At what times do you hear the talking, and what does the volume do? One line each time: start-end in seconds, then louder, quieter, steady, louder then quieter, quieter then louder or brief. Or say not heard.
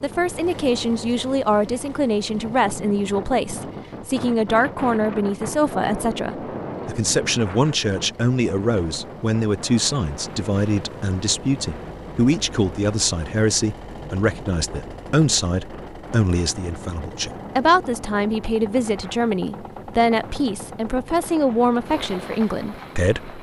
0.0-23.3 steady.